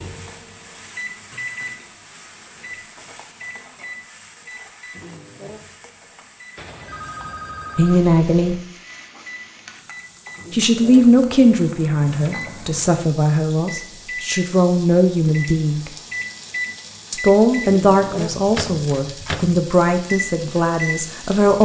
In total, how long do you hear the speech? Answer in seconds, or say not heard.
11 s.